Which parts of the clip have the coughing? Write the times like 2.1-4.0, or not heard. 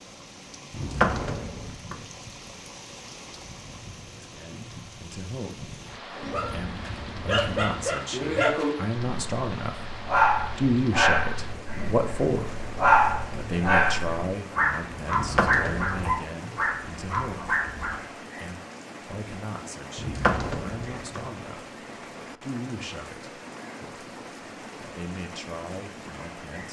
not heard.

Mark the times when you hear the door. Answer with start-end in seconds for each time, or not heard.
0.7-2.0, 15.1-16.1, 19.9-21.3.